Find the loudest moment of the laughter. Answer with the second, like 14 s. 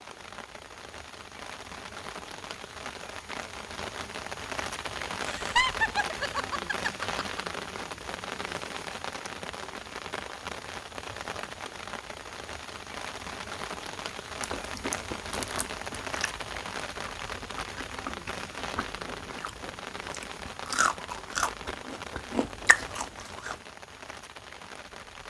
6 s.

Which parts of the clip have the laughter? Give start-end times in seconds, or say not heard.
5.3-7.5.